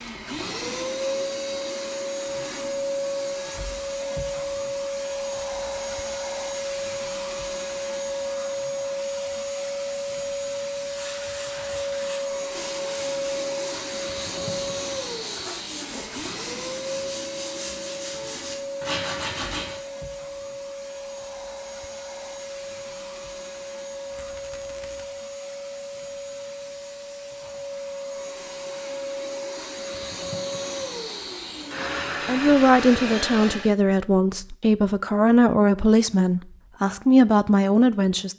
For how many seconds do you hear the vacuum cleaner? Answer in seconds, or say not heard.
34 s.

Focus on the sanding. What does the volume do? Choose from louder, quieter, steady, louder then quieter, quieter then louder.
louder.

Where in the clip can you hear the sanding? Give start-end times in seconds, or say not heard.
10.8-19.8.